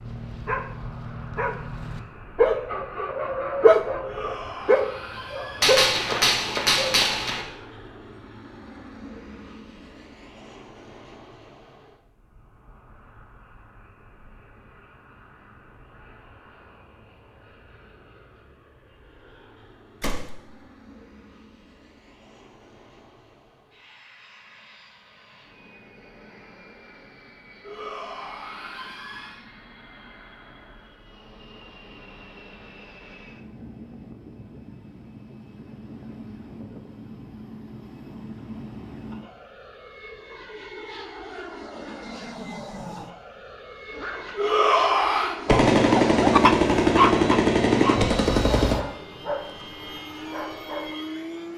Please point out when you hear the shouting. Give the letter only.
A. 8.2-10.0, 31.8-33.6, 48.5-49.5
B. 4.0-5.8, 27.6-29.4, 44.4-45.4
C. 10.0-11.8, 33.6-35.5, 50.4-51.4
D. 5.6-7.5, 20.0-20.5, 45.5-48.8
B.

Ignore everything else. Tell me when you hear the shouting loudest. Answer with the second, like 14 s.
45 s.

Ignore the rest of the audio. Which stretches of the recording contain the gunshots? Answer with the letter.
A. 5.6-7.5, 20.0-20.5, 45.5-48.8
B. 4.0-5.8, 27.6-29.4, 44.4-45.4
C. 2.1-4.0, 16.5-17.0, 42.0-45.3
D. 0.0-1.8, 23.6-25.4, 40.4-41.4
A.